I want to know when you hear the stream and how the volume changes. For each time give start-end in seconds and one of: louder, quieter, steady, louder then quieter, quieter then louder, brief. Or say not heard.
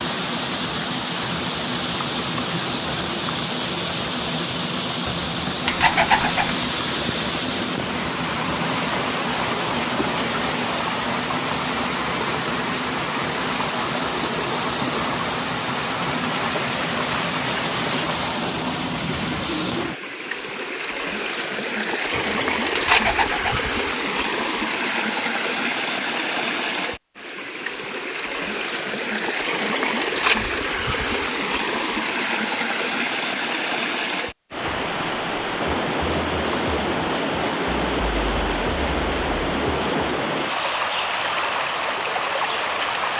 0.0-43.1 steady.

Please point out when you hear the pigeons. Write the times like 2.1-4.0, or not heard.
5.0-6.5, 22.1-23.6.